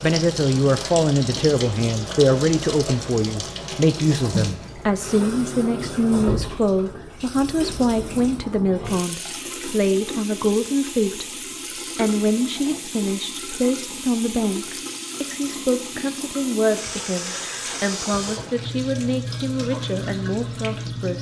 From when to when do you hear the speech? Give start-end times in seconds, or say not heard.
0.0-11.2, 11.9-21.1.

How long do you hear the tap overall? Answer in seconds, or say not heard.
21 s.